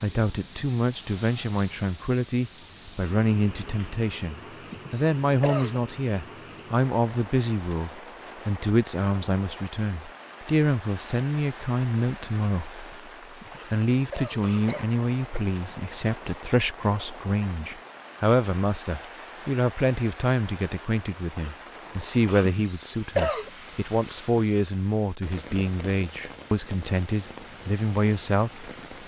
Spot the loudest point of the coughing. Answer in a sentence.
The loudest moment of the coughing is at 23 seconds.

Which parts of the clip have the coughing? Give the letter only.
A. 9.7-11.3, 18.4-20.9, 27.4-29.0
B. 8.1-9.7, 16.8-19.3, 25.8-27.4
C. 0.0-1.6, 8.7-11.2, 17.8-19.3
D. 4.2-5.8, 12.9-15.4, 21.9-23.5
D.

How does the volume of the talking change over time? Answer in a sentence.
The loudness of the talking stays about the same.